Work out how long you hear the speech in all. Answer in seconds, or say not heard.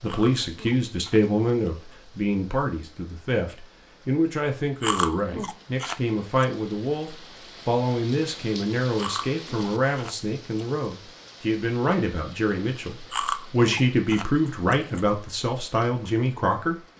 17 s.